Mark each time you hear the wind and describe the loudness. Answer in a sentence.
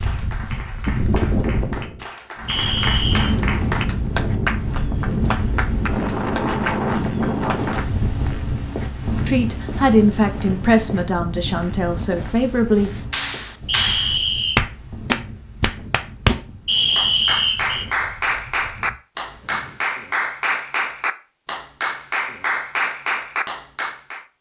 The wind can be heard from 0.0 to 19.9 s, getting quieter.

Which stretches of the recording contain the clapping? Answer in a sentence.
You can hear the clapping from 0.0 to 7.8 s and from 13.1 to 24.2 s.